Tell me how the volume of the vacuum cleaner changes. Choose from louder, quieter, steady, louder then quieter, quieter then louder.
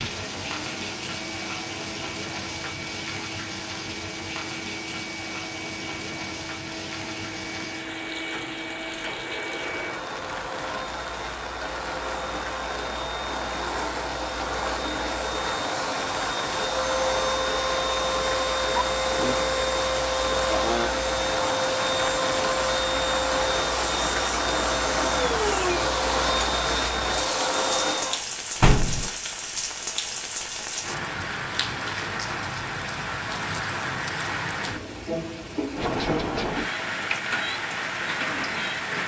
louder.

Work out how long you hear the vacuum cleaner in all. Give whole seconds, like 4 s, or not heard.
28 s.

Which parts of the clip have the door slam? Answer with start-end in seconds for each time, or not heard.
28.6-29.1.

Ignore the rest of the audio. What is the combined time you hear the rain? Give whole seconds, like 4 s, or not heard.
39 s.